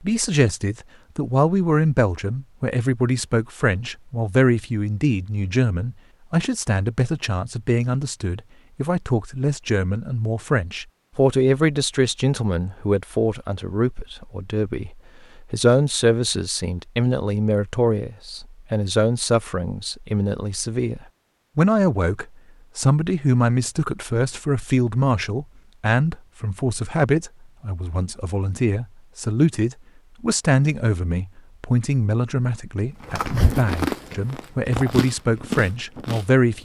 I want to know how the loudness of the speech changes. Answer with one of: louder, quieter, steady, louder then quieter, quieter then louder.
steady.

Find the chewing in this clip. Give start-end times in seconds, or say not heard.
33.0-36.6.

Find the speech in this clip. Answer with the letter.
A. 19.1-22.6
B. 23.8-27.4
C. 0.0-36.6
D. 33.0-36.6
C.